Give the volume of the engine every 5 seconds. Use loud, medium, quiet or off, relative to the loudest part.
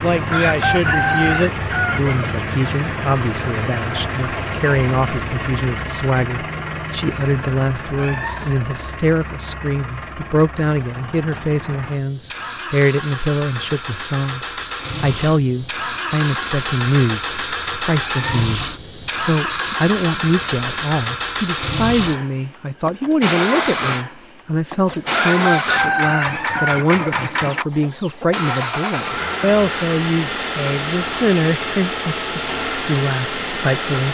loud, medium, medium, loud, loud, loud, loud.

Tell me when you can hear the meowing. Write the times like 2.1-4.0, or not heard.
8.0-8.6, 17.9-18.6, 26.2-26.6.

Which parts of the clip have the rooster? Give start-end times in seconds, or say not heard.
0.1-2.8, 24.9-28.2.